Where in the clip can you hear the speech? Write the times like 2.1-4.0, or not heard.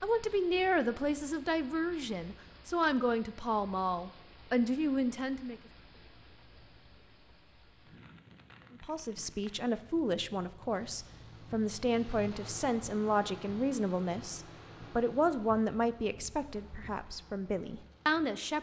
0.0-5.6, 8.8-18.5.